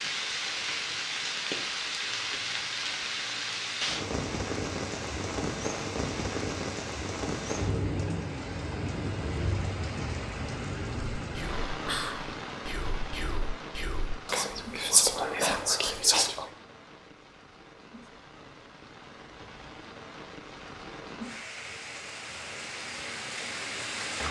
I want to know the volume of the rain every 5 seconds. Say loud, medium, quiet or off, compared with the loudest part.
loud, loud, medium, quiet, medium.